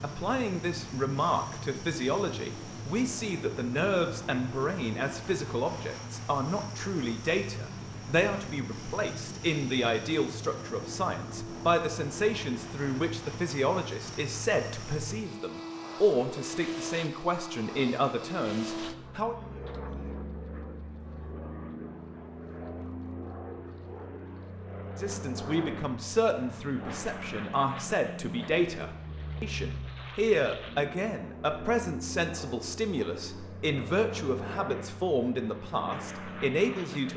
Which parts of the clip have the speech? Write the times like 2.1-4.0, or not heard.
0.0-19.4, 24.9-37.1.